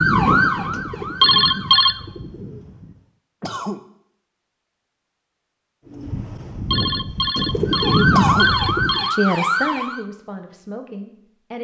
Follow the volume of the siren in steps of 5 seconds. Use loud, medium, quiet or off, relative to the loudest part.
loud, loud, off.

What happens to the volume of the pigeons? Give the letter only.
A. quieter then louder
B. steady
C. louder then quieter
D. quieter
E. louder
A.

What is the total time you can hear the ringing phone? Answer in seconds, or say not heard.
3 s.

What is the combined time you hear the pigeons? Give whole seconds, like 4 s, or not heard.
6 s.